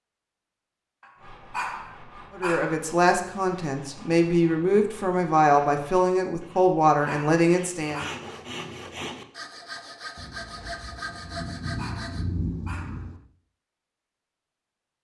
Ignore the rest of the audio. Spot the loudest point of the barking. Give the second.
2 s.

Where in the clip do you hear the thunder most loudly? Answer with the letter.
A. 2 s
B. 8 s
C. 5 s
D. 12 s
D.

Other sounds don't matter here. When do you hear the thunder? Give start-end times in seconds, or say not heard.
10.2-13.2.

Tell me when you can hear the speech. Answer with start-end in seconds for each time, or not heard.
2.4-8.0.